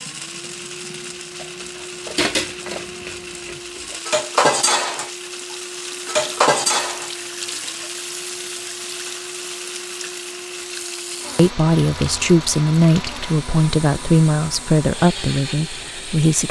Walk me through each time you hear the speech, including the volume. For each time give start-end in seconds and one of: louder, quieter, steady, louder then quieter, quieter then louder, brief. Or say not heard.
11.3-16.4 quieter.